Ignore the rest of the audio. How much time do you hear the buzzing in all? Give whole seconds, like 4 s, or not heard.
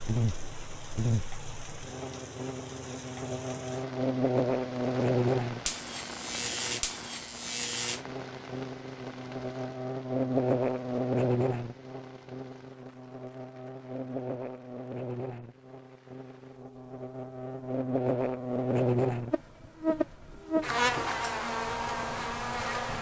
23 s.